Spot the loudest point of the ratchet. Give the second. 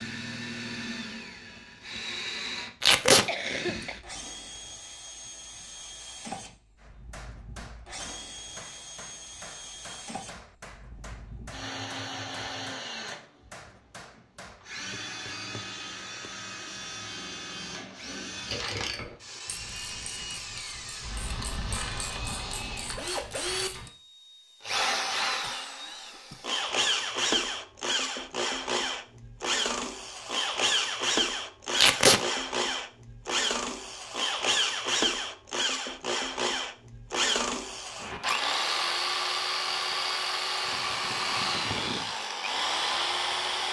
19 s.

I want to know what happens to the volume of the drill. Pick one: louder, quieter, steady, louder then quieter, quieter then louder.
louder.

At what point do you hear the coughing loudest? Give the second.
4 s.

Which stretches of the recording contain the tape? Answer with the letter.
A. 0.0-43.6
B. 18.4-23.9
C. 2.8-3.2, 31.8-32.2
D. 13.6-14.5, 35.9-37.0
C.